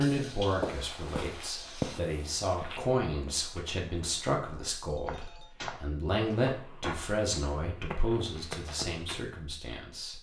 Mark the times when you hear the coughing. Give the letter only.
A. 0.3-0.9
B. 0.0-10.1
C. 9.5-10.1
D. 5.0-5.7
D.